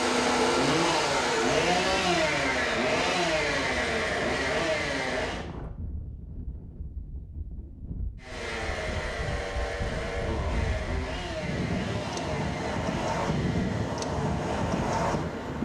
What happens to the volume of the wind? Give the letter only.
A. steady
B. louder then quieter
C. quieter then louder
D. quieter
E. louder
E.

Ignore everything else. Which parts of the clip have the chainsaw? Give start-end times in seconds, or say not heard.
0.0-5.5, 8.2-15.6.